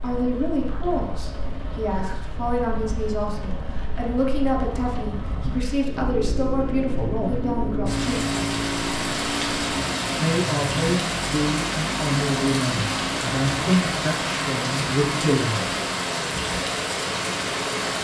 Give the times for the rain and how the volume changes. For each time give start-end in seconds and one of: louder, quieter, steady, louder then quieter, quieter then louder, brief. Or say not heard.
0.0-17.9 louder.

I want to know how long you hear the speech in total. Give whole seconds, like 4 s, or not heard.
14 s.